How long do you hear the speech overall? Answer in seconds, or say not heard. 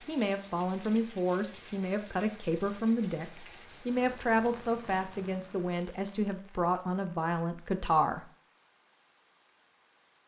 8 s.